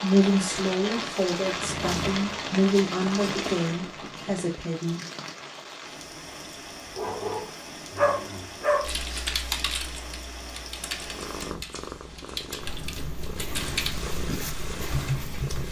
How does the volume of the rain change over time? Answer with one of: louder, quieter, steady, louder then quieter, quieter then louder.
quieter.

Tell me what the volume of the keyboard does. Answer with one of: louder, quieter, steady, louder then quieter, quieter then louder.
quieter then louder.